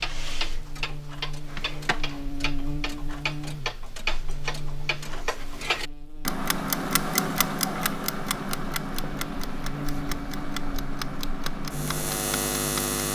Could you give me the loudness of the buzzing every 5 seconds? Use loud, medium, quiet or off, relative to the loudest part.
medium, medium, loud.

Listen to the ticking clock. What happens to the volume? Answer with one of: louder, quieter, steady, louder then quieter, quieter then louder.
louder then quieter.